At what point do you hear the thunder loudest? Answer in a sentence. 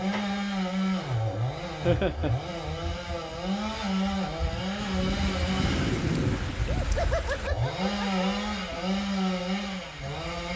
The volume of the thunder peaks at 6 seconds.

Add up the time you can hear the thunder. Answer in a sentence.
The thunder can be heard for 3 seconds in total.